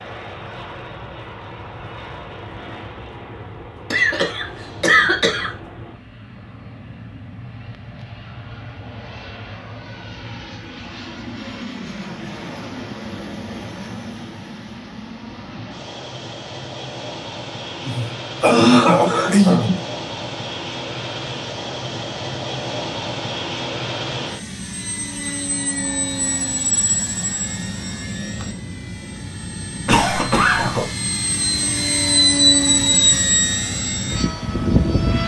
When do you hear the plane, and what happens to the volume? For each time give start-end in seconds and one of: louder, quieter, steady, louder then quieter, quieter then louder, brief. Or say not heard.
0.0-35.2 louder.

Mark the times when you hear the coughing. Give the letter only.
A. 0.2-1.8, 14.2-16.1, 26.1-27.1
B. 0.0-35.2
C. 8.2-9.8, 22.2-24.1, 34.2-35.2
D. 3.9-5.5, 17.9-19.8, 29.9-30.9
D.